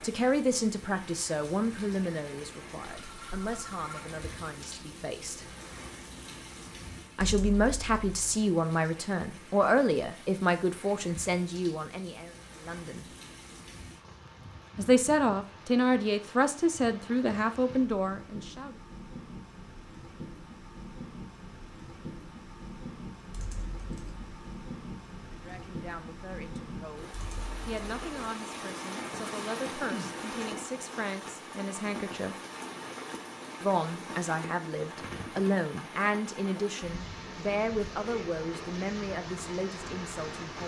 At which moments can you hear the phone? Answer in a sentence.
You can hear the phone from 3.0 to 4.0 s.